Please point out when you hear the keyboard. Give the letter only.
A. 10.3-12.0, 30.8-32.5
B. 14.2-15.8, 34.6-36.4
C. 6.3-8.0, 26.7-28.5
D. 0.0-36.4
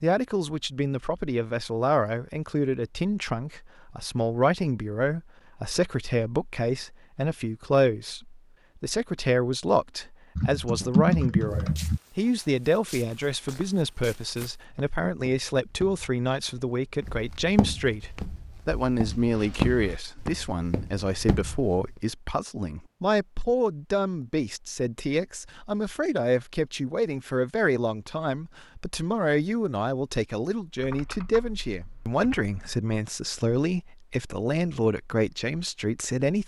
A.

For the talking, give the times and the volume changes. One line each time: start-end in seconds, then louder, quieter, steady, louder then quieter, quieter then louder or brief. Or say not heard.
0.0-36.4 steady.